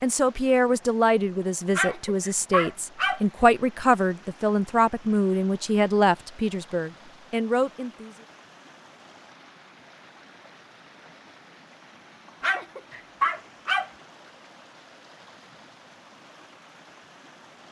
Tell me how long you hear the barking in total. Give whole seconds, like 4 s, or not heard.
3 s.